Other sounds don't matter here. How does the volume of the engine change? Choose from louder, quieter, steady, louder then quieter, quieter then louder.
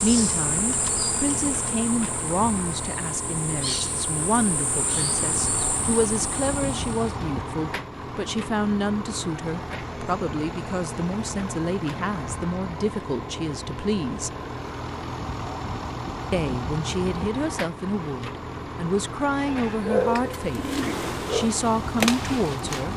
steady.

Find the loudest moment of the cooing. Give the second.
20 s.